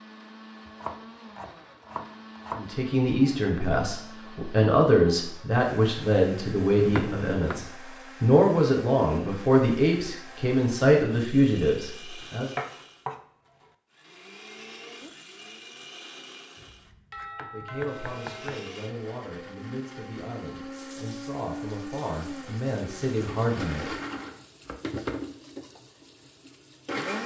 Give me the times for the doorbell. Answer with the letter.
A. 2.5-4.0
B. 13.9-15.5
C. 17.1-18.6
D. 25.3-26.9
C.